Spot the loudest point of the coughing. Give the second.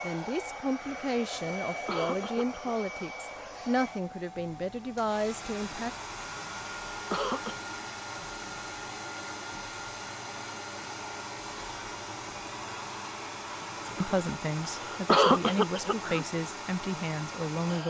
15 s.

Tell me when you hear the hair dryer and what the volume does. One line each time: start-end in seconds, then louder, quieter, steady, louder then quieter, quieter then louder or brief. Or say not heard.
0.0-17.8 steady.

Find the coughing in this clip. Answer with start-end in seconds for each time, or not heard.
1.7-2.7, 6.9-7.5, 14.7-16.2.